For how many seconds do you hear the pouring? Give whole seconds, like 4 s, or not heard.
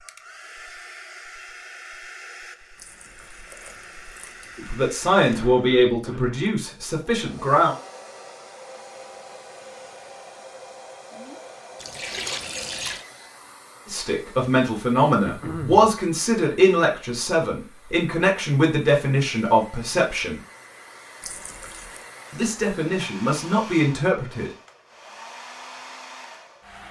4 s.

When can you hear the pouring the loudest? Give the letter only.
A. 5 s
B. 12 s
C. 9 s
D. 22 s
B.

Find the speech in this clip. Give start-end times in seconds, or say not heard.
4.5-7.8, 13.8-20.4, 22.3-24.5.